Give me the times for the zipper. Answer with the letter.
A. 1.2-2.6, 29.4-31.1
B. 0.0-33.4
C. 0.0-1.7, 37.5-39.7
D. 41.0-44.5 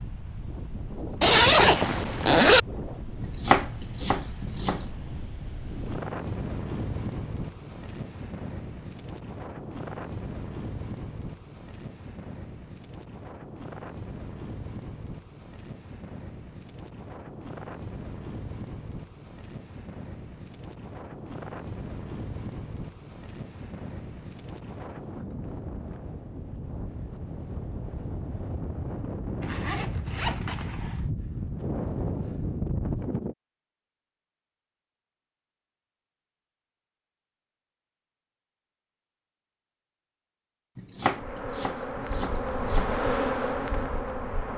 A.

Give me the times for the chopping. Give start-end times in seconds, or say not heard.
3.2-4.9, 40.8-42.9.